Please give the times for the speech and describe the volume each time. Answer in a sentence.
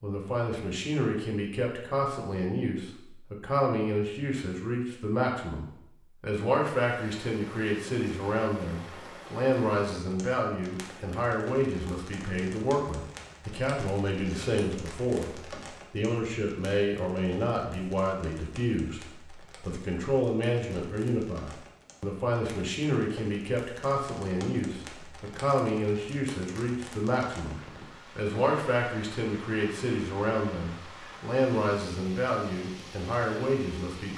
You can hear the speech from 0.0 to 34.1 s, at a steady volume.